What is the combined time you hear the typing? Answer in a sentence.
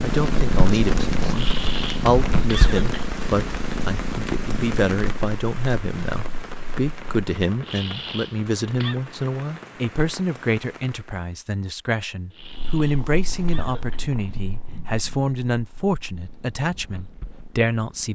The typing can't be heard in this clip.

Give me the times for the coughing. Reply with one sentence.
You can hear the coughing from 1.3 to 3.0 s, from 7.6 to 8.9 s and from 12.3 to 14.1 s.